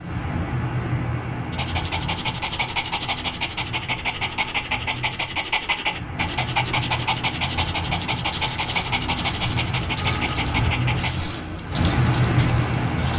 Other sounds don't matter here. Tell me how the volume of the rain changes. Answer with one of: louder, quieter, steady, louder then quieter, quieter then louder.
quieter then louder.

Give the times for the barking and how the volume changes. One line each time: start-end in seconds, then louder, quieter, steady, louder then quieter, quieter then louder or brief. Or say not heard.
1.5-11.2 steady.